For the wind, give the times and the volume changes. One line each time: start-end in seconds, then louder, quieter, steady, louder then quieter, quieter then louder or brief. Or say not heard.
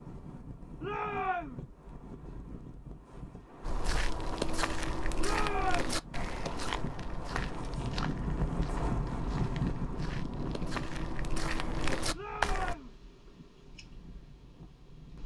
0.0-15.2 louder then quieter.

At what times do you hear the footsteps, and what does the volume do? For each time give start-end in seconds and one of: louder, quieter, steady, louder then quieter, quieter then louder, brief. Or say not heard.
3.6-12.8 quieter then louder.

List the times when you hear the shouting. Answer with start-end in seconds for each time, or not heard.
0.8-1.6, 5.2-6.0, 12.1-12.9.